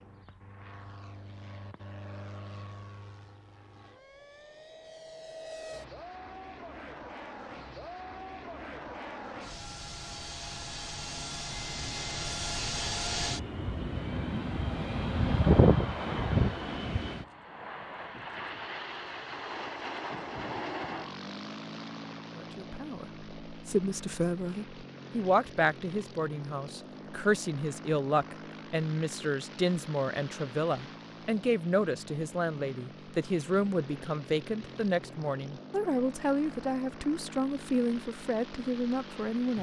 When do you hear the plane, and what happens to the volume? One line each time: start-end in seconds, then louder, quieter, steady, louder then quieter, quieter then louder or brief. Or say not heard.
0.0-39.5 louder then quieter.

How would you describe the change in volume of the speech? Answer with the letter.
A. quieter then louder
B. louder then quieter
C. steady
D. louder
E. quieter
C.